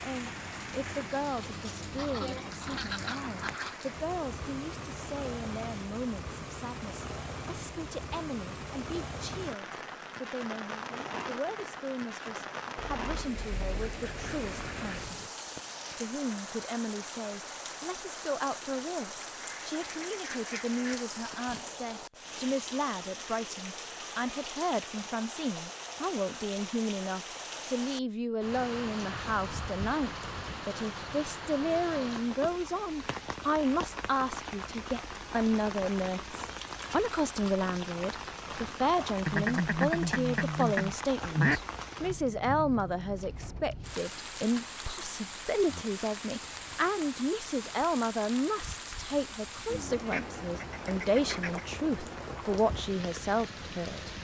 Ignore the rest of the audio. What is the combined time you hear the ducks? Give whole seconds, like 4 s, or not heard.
11 s.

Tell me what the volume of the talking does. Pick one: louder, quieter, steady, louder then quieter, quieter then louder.
louder.